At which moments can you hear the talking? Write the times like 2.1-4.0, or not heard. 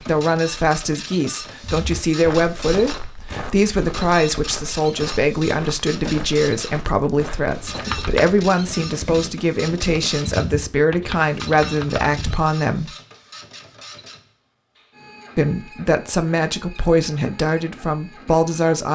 0.0-12.9, 15.3-18.8.